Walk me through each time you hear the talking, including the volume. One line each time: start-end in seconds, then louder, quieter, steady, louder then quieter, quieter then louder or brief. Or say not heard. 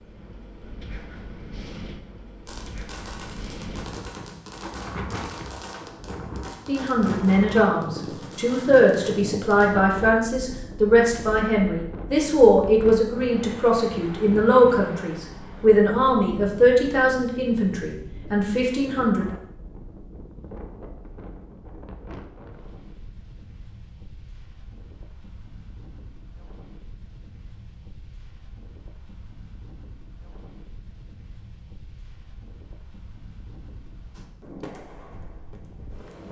6.7-19.2 steady.